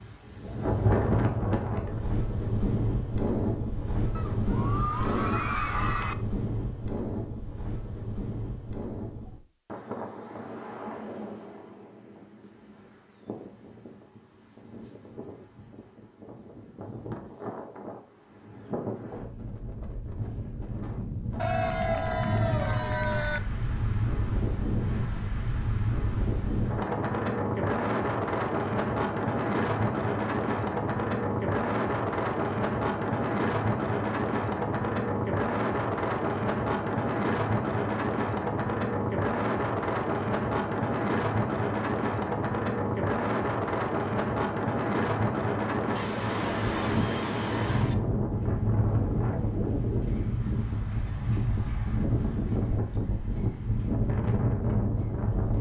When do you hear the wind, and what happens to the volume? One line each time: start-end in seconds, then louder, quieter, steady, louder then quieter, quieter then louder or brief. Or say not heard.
0.0-55.5 quieter then louder.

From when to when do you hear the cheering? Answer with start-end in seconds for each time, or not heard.
4.2-6.2, 21.4-23.4, 46.0-48.0.